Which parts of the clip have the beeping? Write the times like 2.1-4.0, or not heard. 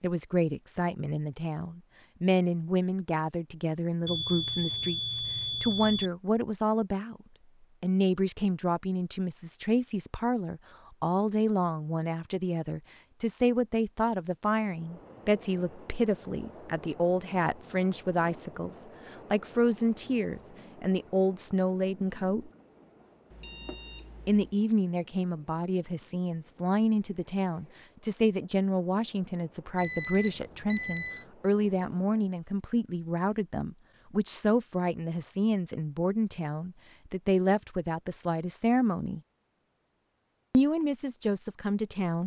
4.0-6.1, 23.3-24.6, 29.8-31.2.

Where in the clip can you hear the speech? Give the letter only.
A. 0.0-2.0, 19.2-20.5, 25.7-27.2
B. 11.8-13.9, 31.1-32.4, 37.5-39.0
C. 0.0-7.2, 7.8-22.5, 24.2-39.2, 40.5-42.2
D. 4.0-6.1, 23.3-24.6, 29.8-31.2
C.